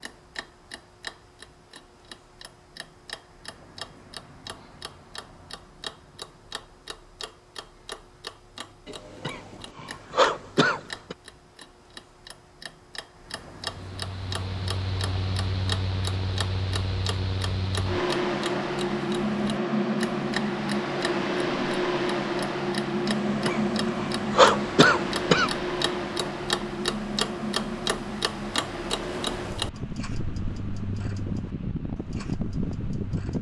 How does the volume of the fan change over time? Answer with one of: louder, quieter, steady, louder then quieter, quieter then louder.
louder then quieter.